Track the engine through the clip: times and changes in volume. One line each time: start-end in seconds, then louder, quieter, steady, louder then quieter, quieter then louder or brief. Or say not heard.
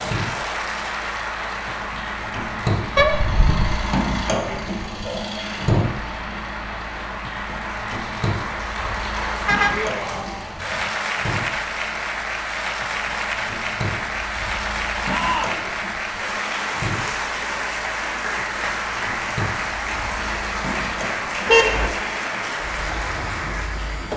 0.0-24.1 quieter.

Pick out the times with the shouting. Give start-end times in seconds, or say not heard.
9.7-10.4, 15.1-15.7.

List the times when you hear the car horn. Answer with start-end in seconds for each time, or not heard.
3.0-3.6, 9.4-10.9, 21.4-21.9.